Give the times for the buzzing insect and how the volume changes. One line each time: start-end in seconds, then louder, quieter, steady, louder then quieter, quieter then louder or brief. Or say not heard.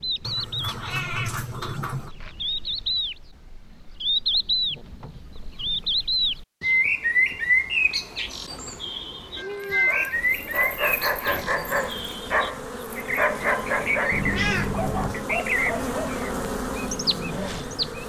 10.1-18.0 louder.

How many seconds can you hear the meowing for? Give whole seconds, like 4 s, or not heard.
4 s.